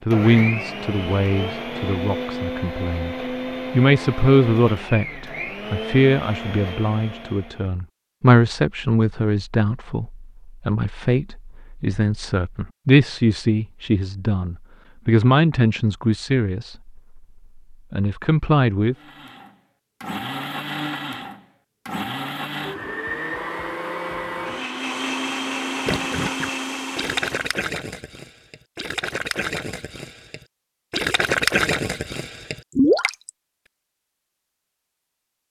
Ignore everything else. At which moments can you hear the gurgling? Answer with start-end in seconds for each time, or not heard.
25.9-33.3.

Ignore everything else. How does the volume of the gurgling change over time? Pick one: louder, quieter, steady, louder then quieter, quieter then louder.
quieter then louder.